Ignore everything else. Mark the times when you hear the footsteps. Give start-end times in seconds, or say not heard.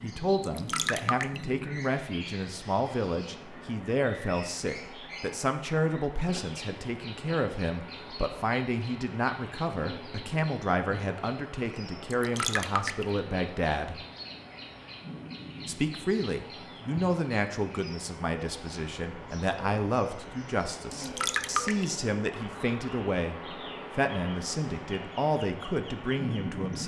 not heard.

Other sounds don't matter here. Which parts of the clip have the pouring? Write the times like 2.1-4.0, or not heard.
0.4-1.4, 12.1-13.1, 20.9-21.9.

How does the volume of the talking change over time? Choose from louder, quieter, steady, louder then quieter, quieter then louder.
steady.